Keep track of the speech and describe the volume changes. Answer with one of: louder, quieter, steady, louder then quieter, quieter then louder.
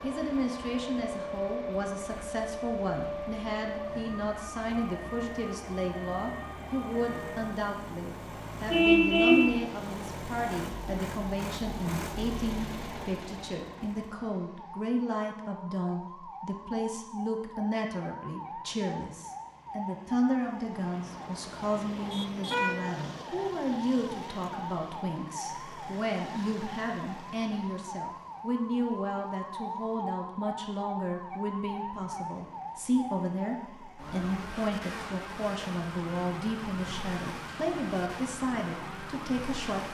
steady.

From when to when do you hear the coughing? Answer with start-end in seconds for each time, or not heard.
not heard.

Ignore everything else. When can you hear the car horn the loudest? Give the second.
9 s.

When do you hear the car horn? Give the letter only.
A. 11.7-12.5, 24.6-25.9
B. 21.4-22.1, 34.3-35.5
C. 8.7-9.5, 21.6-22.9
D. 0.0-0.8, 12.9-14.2
C.